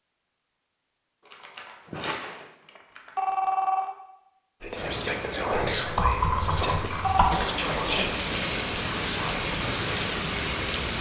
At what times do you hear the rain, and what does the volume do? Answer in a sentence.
The rain can be heard from 4.8 to 10.9 s, getting louder.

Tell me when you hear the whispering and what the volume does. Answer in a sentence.
The whispering can be heard from 4.6 to 10.2 s, getting quieter.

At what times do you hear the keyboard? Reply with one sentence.
You can hear the keyboard from 1.2 to 3.2 s and from 5.8 to 7.2 s.